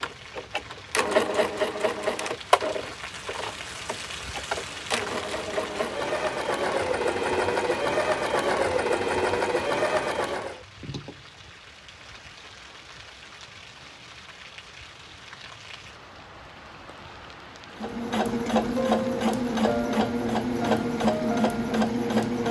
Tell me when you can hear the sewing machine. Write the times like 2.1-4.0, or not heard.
0.0-10.6, 17.8-22.4.